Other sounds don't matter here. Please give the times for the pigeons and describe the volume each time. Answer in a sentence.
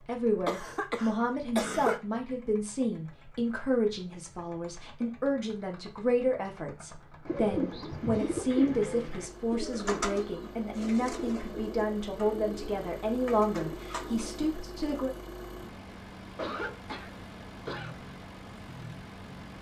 You can hear the pigeons from 7.2 to 15.1 s, getting quieter.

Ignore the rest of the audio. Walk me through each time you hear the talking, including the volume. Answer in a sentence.
The talking can be heard from 0.1 to 15.1 s, at a steady volume.